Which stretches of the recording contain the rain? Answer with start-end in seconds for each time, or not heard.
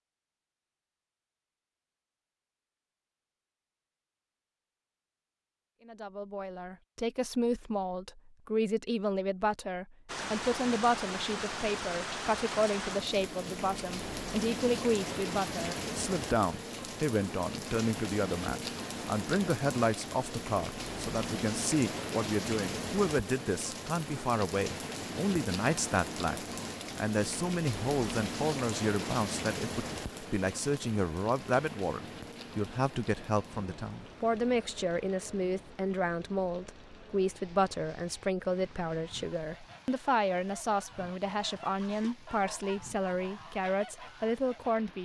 10.1-45.0.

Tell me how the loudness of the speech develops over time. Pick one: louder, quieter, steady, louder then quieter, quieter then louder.
steady.